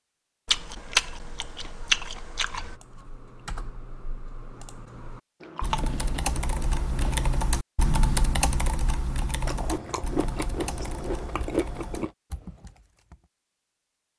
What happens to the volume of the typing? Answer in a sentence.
The loudness of the typing goes up, then down.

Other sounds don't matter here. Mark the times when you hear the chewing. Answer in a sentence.
You can hear the chewing from 0.5 to 2.8 s, from 5.4 to 7.3 s and from 9.4 to 12.1 s.